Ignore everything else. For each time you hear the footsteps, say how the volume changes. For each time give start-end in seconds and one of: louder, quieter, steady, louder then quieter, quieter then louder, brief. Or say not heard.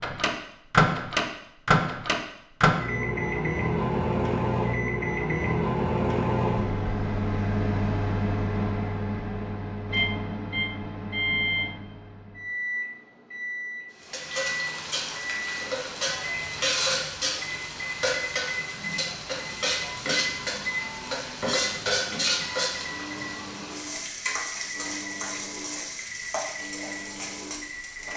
not heard.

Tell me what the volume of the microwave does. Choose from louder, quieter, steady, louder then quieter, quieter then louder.
quieter.